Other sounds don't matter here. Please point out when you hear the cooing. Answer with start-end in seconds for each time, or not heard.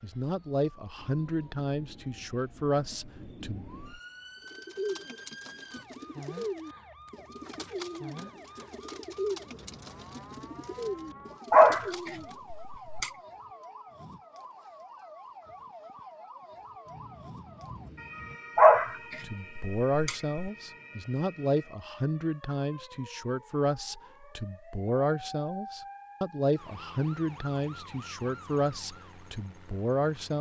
4.5-12.4.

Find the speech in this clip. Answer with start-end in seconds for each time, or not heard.
0.0-3.6, 19.2-30.3.